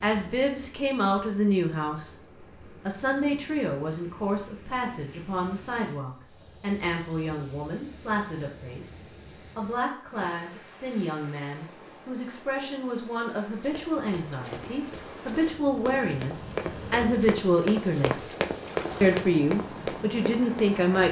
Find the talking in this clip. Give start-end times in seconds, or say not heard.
0.0-2.1, 2.9-18.3, 19.0-21.0.